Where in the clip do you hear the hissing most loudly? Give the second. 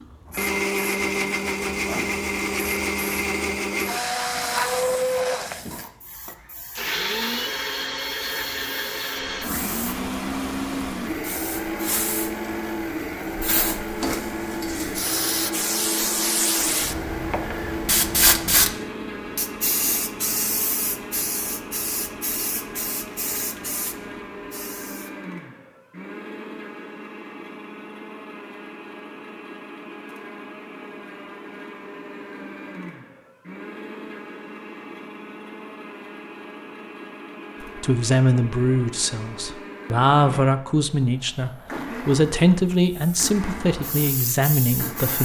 18 s.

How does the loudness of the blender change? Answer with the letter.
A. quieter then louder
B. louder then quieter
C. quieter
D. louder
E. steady
C.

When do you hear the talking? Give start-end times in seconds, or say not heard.
37.6-45.1.